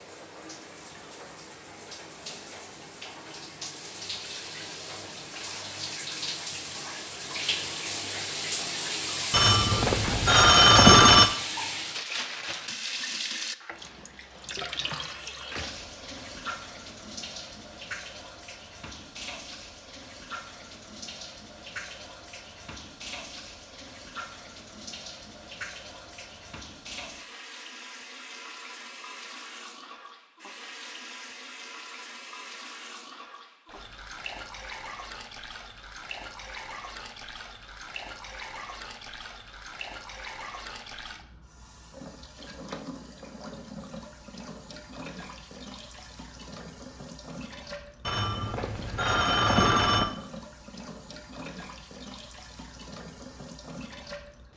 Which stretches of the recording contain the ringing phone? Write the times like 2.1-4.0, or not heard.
9.3-11.3, 48.0-50.0.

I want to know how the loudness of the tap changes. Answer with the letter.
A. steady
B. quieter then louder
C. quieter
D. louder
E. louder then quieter
C.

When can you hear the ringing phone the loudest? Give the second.
11 s.